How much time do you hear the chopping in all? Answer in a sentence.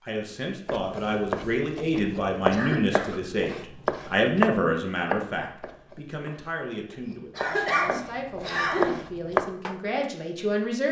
The chopping can be heard for 9 seconds in total.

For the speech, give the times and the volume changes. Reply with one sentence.
You can hear the speech from 0.0 to 10.8 s, getting quieter.